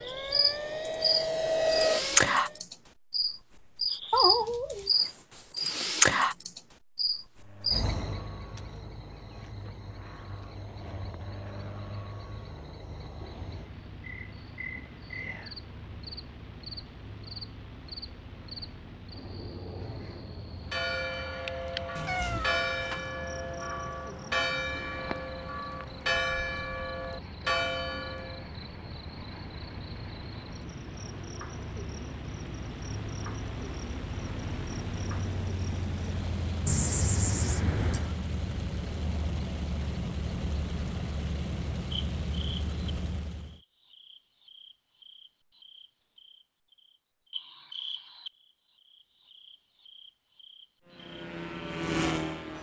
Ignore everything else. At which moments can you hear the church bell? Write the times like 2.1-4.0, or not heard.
20.7-28.4.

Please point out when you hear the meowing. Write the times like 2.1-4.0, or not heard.
4.1-4.9, 21.9-23.1, 36.6-38.1.